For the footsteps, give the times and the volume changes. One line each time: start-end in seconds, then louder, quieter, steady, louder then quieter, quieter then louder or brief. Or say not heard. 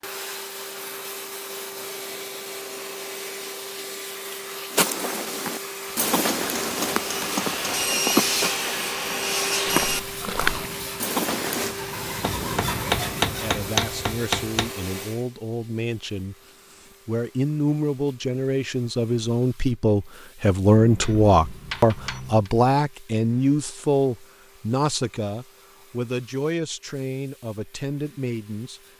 4.7-11.8 steady.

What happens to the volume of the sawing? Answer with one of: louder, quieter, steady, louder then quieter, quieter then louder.
quieter then louder.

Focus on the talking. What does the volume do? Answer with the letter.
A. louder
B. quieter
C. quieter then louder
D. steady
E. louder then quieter
E.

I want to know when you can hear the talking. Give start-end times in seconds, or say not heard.
13.3-28.8.